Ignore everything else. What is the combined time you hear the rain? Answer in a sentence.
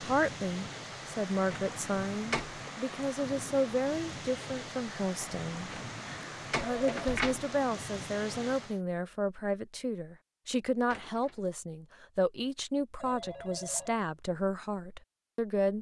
You can hear the rain for 9 seconds altogether.